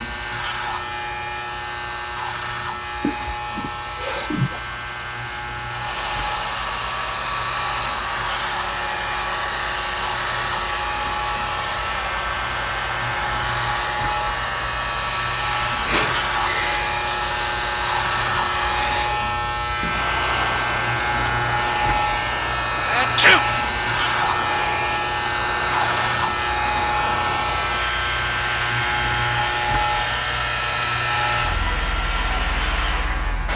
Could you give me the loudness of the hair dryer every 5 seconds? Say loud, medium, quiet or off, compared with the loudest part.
medium, loud, loud, loud, loud, loud, loud.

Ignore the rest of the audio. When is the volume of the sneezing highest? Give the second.
23 s.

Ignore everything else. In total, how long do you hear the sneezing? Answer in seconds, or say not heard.
3 s.